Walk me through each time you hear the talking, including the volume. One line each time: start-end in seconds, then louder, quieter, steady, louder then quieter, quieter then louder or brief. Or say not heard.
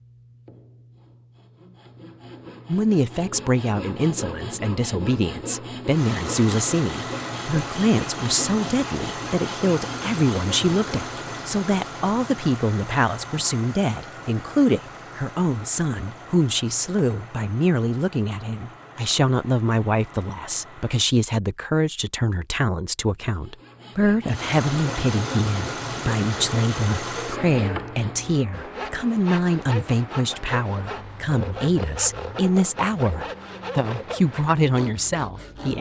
2.6-35.7 steady.